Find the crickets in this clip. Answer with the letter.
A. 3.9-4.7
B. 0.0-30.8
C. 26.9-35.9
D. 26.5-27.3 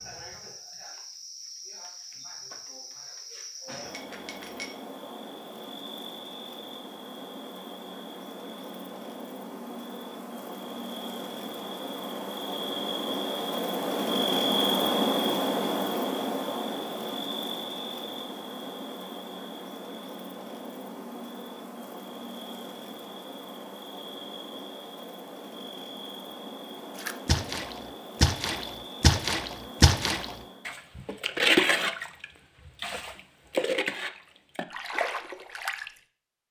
B.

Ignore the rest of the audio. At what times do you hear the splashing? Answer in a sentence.
The splashing can be heard from 26.9 to 35.9 s.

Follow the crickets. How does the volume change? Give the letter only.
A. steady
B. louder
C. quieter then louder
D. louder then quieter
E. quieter
D.